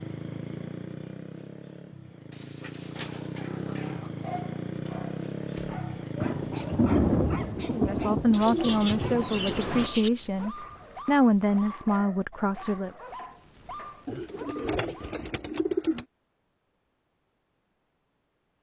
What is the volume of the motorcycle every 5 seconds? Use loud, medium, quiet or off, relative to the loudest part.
loud, loud, off, off.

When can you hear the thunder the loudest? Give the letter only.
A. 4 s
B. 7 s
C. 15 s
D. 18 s
B.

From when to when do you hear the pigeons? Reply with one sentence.
The pigeons can be heard from 2.3 to 4.5 s, from 8.3 to 10.1 s and from 14.1 to 16.1 s.